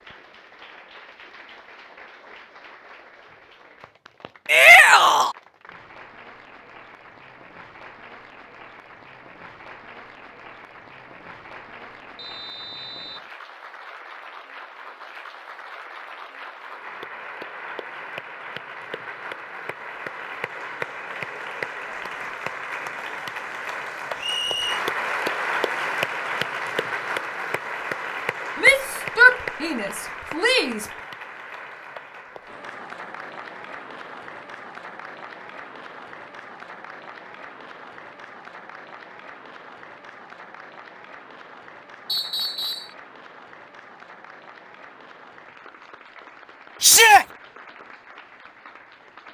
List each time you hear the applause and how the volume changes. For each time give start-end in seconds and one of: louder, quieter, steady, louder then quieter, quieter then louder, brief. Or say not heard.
0.0-49.3 louder then quieter.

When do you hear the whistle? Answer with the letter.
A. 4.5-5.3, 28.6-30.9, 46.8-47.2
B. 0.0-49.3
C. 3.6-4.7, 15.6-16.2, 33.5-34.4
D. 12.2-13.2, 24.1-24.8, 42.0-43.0
D.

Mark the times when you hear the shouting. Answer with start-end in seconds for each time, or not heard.
4.5-5.3, 28.6-30.9, 46.8-47.2.